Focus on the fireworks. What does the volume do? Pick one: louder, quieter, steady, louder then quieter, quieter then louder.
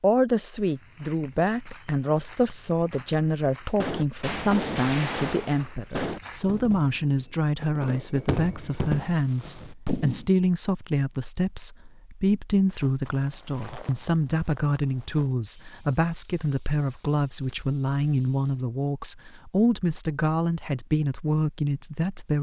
quieter then louder.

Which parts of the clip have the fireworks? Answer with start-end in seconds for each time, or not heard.
3.8-10.2.